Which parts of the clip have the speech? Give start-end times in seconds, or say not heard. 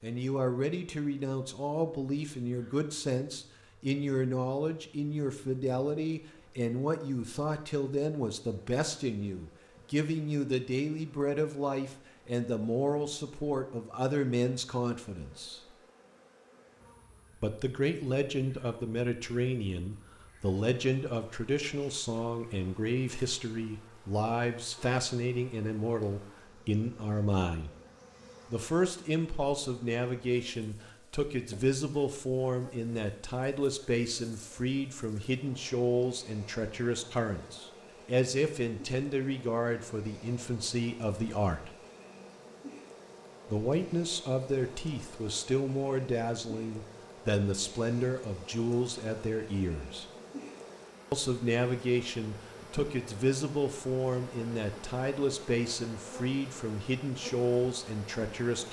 0.0-15.6, 17.4-27.7, 28.5-41.7, 43.5-50.0, 51.1-58.6.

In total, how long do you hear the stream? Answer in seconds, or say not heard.
not heard.